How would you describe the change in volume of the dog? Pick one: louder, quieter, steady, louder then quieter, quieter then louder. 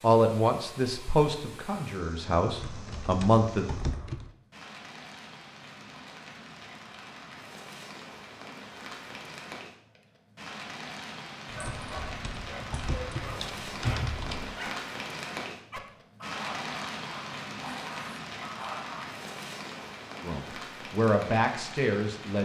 steady.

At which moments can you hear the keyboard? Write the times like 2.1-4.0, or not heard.
2.6-4.3, 11.7-14.5.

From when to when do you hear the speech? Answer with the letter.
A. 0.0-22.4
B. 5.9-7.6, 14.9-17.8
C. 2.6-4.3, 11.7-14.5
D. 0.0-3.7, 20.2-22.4
D.